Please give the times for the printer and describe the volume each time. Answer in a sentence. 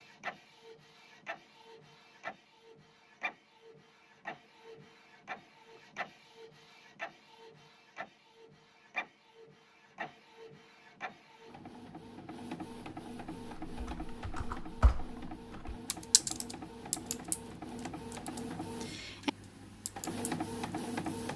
You can hear the printer from 0.0 to 21.3 s, getting louder.